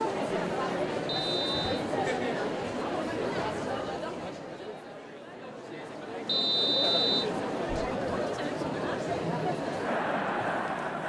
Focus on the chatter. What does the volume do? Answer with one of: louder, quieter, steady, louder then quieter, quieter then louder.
quieter then louder.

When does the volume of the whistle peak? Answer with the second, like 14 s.
7 s.